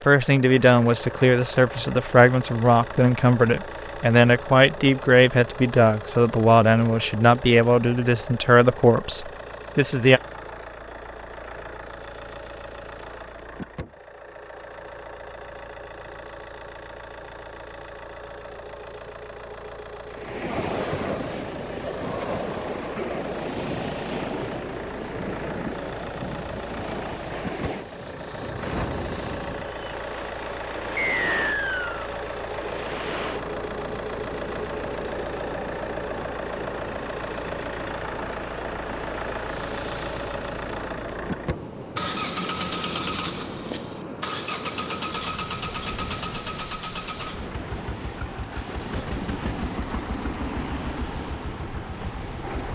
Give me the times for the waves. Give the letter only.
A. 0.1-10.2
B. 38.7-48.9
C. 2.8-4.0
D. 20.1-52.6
D.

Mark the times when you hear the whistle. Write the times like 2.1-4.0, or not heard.
30.9-32.1.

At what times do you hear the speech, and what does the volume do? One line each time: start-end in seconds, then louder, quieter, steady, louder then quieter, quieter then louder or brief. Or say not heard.
0.1-10.2 steady.